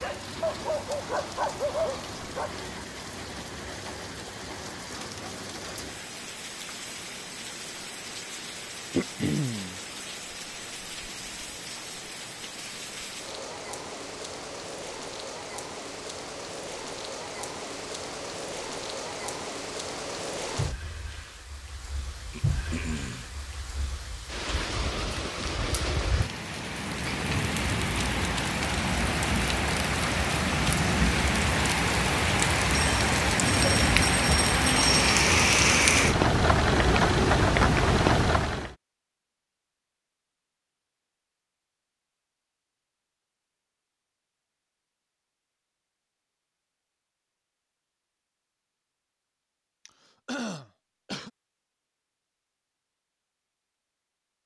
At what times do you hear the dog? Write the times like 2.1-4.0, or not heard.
0.0-2.6.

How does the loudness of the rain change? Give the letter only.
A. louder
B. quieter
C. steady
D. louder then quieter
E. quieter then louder
A.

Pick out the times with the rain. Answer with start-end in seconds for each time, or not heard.
0.0-38.8.